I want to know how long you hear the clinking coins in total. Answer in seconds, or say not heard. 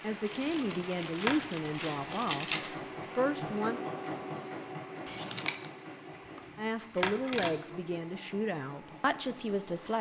2 s.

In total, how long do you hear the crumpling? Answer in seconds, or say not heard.
3 s.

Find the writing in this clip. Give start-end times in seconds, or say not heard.
not heard.